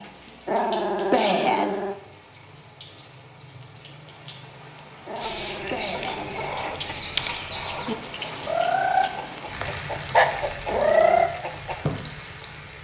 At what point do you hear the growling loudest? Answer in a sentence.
The loudest moment of the growling is at 1 second.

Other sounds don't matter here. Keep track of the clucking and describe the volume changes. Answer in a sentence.
The volume of the clucking goes up.